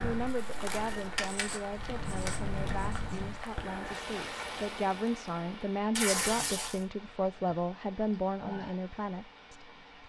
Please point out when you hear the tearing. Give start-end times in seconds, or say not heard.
0.2-1.4, 2.2-2.8, 6.0-6.8.